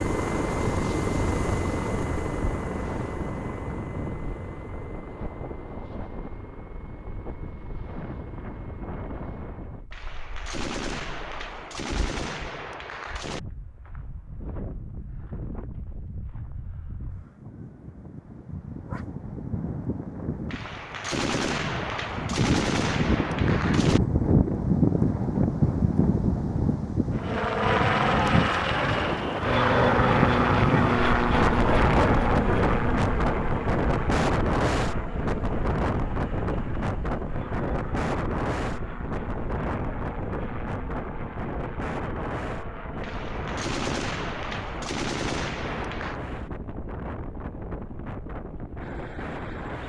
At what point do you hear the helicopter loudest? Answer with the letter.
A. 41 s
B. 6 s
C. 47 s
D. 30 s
D.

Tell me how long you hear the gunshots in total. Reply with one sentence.
The gunshots can be heard for 10 seconds in total.